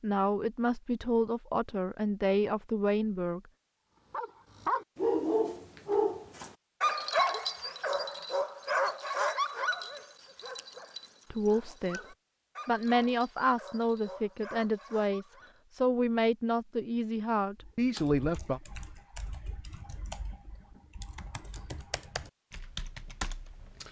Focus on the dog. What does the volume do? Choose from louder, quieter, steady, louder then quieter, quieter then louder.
quieter.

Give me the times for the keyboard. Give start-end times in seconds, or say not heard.
17.6-23.8.